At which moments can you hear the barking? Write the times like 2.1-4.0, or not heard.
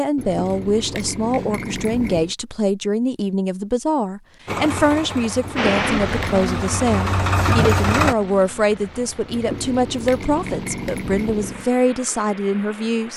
not heard.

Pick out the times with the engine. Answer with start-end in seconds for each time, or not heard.
4.5-8.2.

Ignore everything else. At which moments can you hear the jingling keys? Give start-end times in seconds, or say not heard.
0.1-2.4, 5.4-6.5, 9.3-11.7.